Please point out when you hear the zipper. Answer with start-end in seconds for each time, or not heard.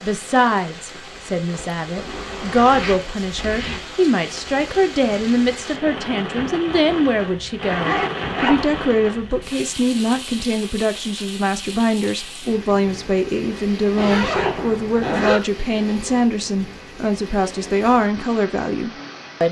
1.9-3.8, 7.6-8.7, 13.9-15.4.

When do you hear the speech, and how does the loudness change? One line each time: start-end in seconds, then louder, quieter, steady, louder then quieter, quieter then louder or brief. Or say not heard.
0.0-19.4 steady.